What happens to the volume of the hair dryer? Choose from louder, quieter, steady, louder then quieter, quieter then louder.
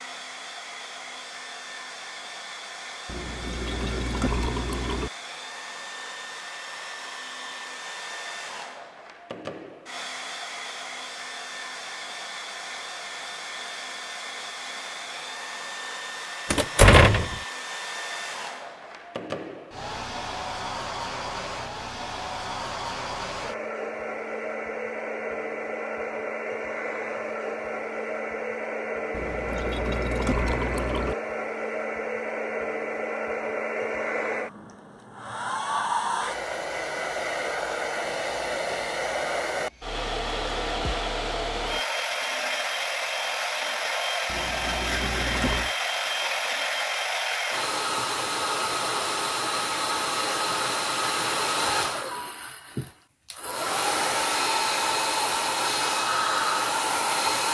louder.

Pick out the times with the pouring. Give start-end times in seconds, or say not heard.
3.0-5.1, 29.1-31.1, 44.2-45.7.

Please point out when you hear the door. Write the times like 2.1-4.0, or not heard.
16.5-17.4.